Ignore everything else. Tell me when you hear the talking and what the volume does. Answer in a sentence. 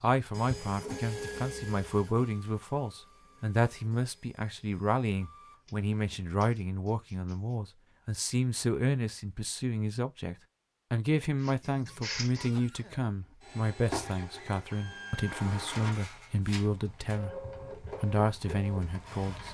The talking can be heard from 0.0 to 19.5 s, at a steady volume.